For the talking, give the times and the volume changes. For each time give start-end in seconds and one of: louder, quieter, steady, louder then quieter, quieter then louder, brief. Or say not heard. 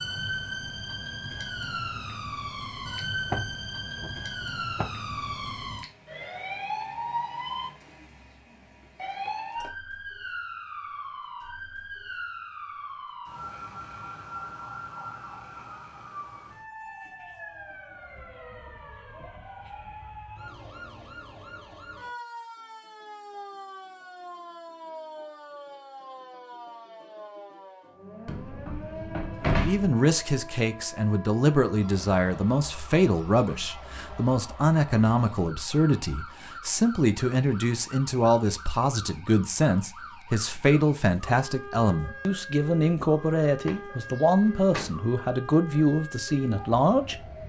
29.4-47.1 steady.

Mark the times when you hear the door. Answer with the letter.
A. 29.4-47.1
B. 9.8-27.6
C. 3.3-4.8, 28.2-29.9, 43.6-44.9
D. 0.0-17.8
C.